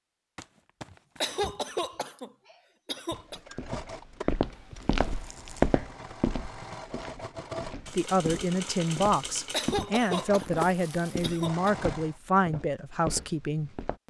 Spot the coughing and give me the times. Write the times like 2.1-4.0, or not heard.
1.2-3.4, 9.5-11.7.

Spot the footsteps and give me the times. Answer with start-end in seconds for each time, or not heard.
3.3-14.0.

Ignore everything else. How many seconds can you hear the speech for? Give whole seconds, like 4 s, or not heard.
6 s.